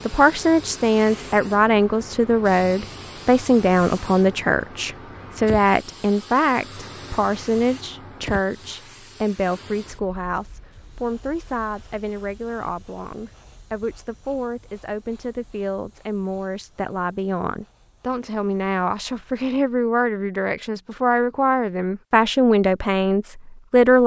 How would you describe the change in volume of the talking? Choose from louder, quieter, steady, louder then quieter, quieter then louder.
quieter then louder.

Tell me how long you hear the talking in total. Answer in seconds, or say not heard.
24 s.